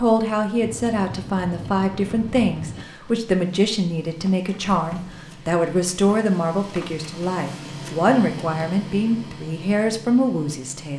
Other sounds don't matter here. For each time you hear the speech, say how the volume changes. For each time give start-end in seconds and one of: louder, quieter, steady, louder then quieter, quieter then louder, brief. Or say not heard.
0.0-10.9 steady.